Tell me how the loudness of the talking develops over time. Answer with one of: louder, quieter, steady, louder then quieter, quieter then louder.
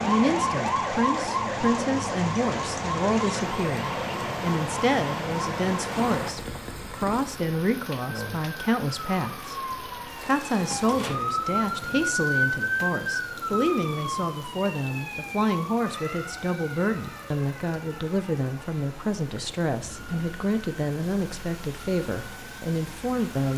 steady.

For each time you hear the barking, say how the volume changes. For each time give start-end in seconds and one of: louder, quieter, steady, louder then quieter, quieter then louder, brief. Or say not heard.
not heard.